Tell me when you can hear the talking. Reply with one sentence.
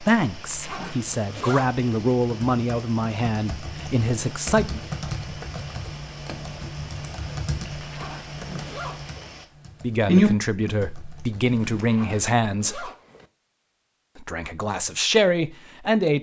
You can hear the talking from 0.0 to 4.8 s, from 9.8 to 12.9 s and from 14.2 to 16.1 s.